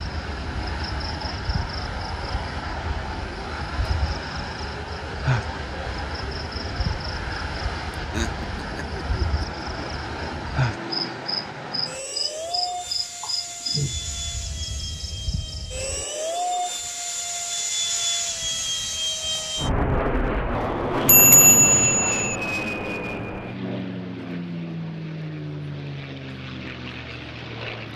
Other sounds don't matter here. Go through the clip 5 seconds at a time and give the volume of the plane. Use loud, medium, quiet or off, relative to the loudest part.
medium, medium, medium, loud, loud, medium.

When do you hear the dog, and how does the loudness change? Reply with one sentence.
You can't hear the dog here.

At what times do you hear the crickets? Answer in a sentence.
You can hear the crickets from 0.0 to 16.1 s.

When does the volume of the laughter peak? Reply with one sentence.
The volume of the laughter peaks at 8 seconds.